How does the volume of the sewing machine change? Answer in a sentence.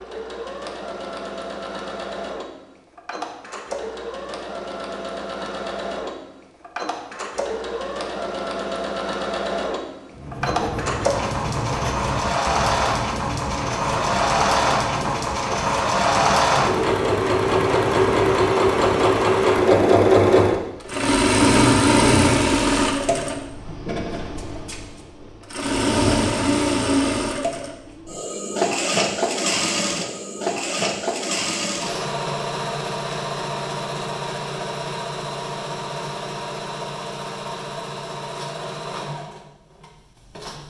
The volume of the sewing machine goes up, then down.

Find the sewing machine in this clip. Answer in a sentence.
The sewing machine can be heard from 0.0 to 40.6 s.